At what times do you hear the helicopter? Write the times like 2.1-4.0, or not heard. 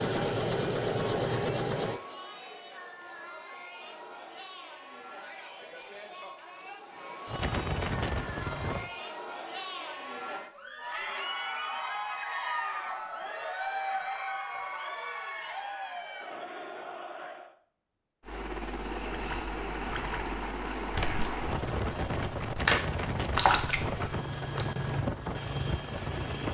0.0-2.0, 7.2-8.9, 18.2-26.4.